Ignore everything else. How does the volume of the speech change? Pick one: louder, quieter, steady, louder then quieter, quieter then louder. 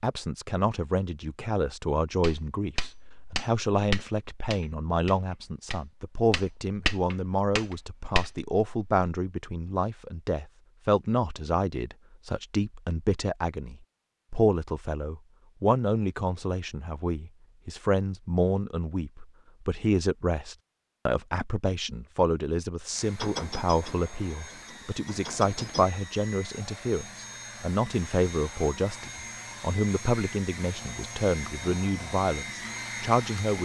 steady.